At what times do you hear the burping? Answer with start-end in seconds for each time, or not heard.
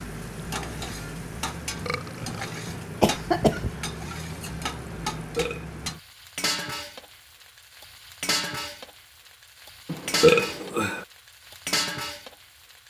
1.9-2.5, 5.2-5.8, 9.8-11.1.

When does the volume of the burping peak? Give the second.
10 s.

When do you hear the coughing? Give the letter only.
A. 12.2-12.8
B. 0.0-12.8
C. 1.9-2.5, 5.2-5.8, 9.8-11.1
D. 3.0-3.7
D.